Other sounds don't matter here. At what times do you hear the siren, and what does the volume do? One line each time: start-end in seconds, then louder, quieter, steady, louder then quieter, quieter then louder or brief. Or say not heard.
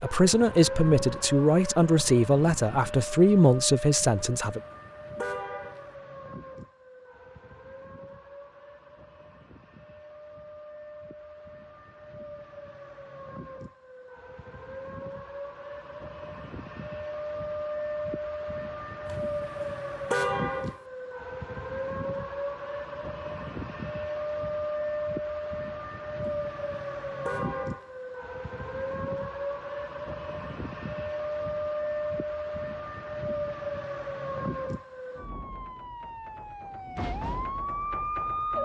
0.0-38.6 quieter then louder.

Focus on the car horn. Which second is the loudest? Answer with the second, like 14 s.
20 s.